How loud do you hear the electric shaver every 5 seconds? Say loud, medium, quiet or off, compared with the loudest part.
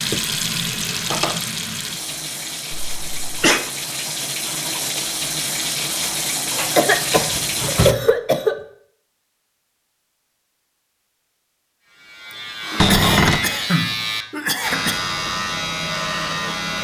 off, off, loud, loud.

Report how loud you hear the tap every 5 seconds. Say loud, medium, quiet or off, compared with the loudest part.
loud, loud, off, off.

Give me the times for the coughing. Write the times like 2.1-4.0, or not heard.
3.0-3.6, 6.8-8.6, 12.7-15.0.